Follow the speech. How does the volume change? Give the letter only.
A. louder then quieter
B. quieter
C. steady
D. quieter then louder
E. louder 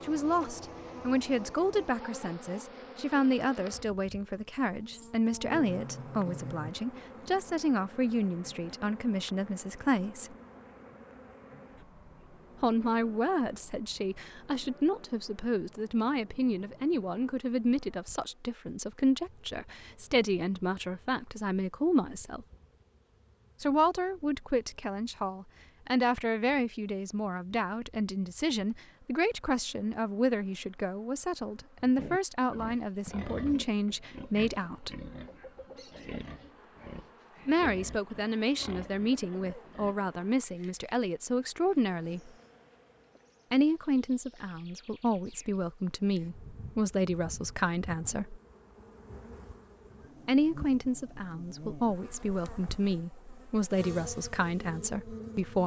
C.